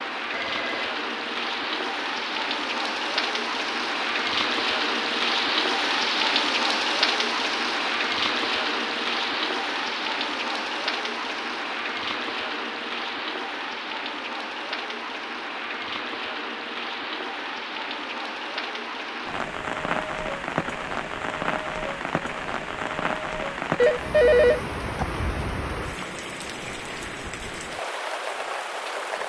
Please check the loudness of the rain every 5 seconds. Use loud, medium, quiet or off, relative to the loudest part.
loud, loud, medium, medium, medium, medium.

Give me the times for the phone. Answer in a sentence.
You can hear the phone from 0.3 to 1.0 s and from 23.8 to 25.1 s.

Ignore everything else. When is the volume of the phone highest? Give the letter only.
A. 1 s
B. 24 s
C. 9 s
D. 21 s
B.